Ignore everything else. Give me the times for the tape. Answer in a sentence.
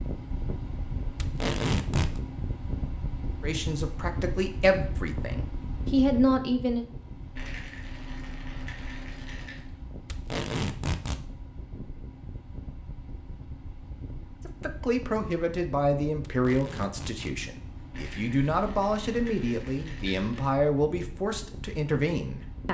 The tape can be heard from 1.2 to 2.2 s, from 10.1 to 11.2 s and from 16.2 to 17.4 s.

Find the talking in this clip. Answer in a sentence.
The talking can be heard from 3.4 to 6.8 s and from 14.4 to 22.6 s.